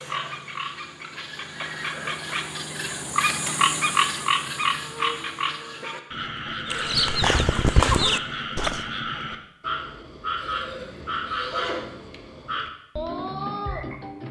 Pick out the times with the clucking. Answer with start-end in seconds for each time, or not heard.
6.7-8.8.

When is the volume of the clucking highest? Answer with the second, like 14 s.
8 s.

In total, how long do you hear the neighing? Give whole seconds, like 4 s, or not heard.
3 s.